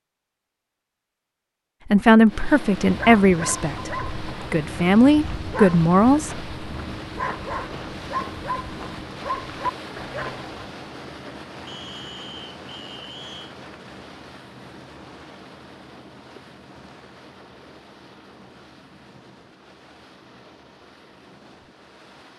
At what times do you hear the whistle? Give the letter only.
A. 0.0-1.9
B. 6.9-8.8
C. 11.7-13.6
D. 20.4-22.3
C.